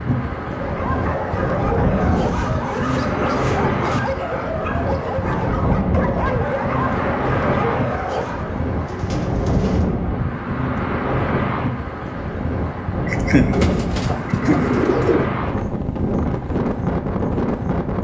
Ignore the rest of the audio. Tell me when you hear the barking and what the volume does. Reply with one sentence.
The barking can be heard from 0.5 to 8.7 s, at a steady volume.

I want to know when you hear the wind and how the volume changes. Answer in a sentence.
You can hear the wind from 0.0 to 18.0 s, at a steady volume.